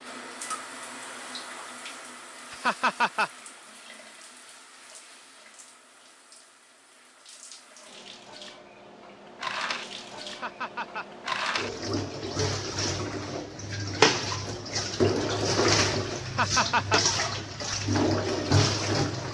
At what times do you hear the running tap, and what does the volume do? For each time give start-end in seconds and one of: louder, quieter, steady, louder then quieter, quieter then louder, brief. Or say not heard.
0.0-19.2 quieter then louder.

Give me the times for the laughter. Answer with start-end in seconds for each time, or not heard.
2.5-3.3, 10.2-11.1, 16.2-17.0.